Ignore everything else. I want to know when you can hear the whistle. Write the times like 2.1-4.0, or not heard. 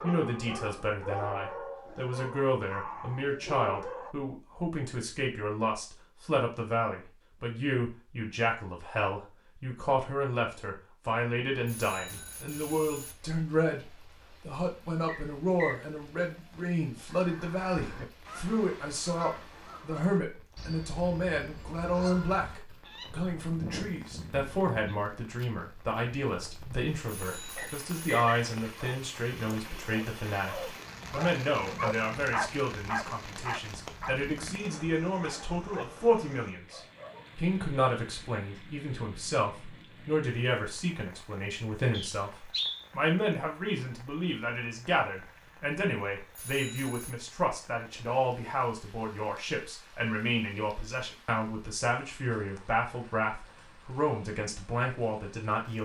15.1-15.8, 27.6-28.4, 41.9-42.9.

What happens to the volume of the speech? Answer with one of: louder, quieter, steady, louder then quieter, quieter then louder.
steady.